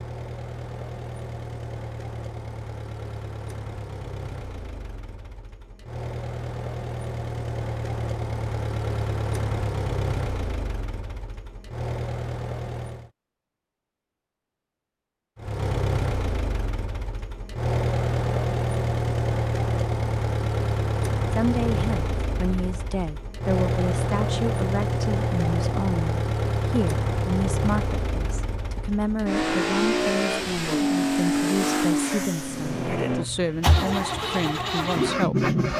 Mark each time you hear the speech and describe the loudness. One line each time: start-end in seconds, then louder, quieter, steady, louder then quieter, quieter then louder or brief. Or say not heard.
21.3-35.5 steady.